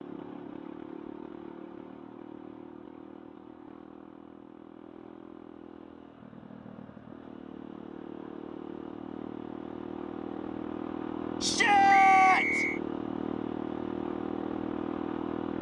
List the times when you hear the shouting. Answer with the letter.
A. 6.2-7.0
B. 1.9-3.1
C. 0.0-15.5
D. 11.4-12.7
D.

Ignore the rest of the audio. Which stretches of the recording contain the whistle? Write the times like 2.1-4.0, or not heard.
11.9-12.8.